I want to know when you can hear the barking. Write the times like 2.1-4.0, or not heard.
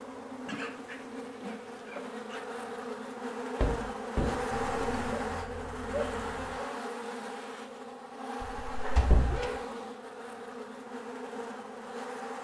0.5-2.4, 4.5-6.7, 8.8-9.8.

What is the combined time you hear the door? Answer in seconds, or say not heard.
2 s.